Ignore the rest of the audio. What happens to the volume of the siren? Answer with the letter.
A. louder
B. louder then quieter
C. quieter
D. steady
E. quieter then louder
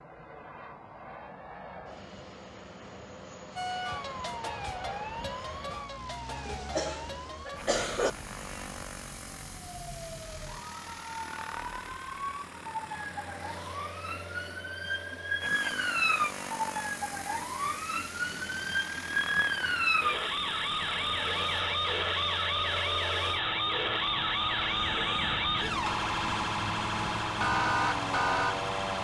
A.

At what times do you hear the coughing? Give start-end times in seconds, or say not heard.
6.5-8.1.